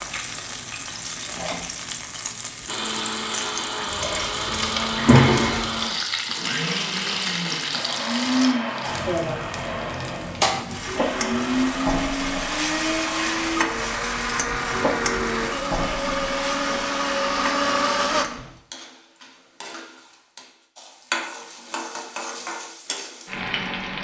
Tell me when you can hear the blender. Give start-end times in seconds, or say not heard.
2.6-18.2.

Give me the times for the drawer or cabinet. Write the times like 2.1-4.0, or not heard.
5.0-5.7.